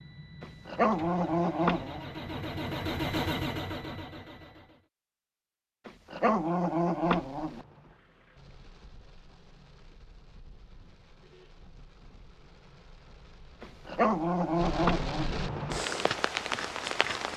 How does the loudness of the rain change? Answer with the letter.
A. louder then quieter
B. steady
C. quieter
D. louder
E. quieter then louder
D.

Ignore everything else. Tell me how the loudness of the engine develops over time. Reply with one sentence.
The volume of the engine goes up, then down.